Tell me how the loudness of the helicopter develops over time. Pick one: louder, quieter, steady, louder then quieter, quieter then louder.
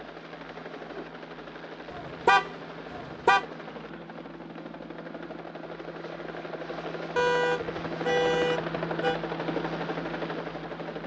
louder.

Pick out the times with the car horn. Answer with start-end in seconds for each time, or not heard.
1.9-3.5, 7.2-9.2.